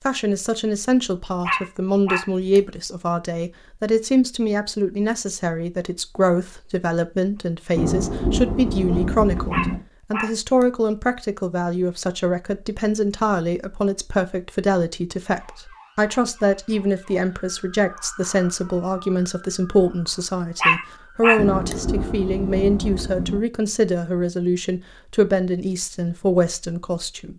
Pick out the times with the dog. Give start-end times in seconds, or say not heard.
1.4-2.6, 9.5-10.7, 20.6-21.8.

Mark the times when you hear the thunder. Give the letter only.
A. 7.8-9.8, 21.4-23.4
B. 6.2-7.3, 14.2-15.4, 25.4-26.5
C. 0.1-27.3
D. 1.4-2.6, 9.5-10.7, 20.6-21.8
A.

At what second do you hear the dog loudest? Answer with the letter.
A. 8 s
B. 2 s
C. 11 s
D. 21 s
D.